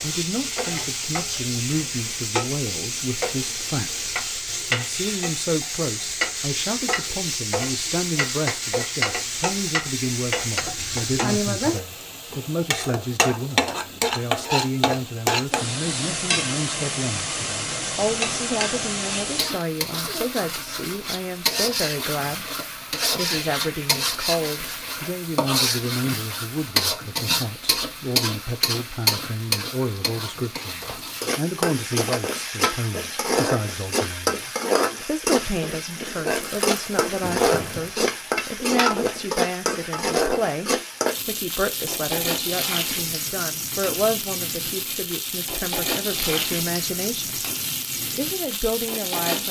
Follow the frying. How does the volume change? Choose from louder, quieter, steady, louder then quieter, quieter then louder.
steady.